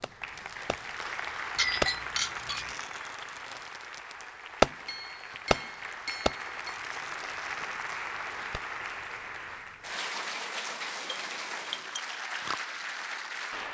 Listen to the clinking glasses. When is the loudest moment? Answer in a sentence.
The volume of the clinking glasses peaks at 2 seconds.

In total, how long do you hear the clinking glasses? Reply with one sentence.
You can hear the clinking glasses for 4 seconds altogether.